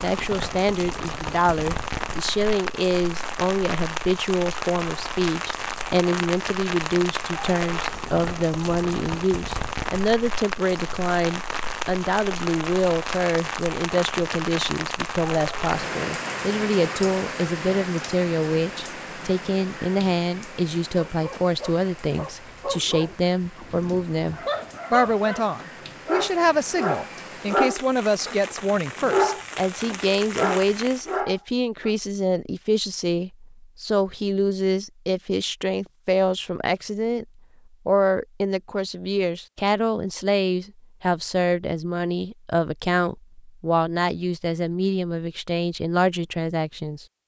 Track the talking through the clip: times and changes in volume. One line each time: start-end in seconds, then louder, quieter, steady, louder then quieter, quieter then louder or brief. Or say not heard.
0.0-37.2 steady
37.9-47.0 steady.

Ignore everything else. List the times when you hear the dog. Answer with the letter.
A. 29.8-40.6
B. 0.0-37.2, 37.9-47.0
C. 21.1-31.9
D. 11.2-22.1
C.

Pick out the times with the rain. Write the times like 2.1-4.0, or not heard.
0.0-31.2.